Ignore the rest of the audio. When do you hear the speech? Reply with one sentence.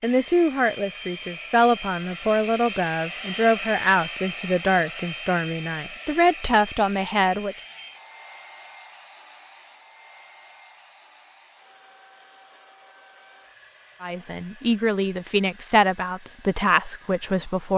The speech can be heard from 0.0 to 7.5 s and from 14.0 to 17.7 s.